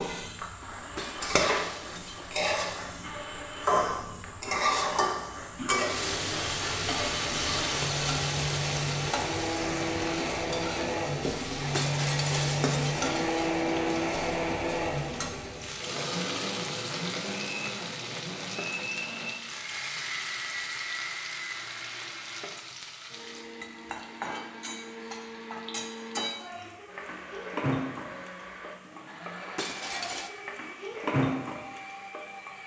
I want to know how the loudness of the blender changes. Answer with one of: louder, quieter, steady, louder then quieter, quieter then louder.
louder then quieter.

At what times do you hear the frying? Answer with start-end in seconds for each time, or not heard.
0.0-32.6.